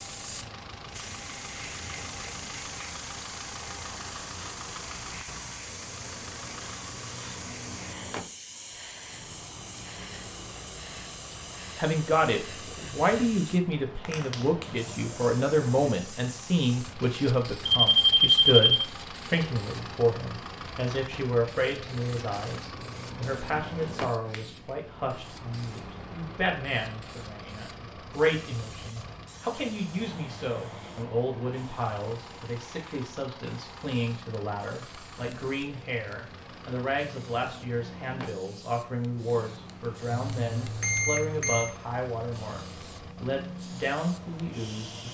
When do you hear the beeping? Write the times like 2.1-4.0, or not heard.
17.6-18.9, 40.1-41.7.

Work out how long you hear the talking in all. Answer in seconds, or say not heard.
33 s.